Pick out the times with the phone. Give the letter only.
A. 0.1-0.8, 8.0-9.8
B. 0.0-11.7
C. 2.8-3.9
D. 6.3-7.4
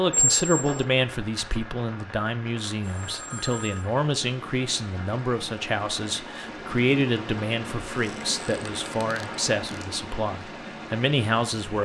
C.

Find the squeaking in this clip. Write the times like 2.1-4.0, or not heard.
0.1-0.8, 8.0-9.8.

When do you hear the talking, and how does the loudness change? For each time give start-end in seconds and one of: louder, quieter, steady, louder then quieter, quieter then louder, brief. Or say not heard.
0.0-11.7 steady.